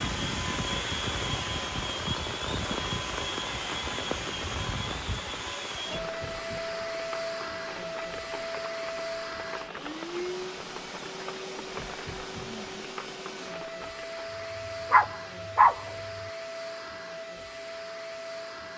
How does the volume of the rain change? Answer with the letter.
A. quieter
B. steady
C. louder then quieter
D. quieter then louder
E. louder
A.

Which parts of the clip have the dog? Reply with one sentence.
The dog can be heard from 14.9 to 15.9 s.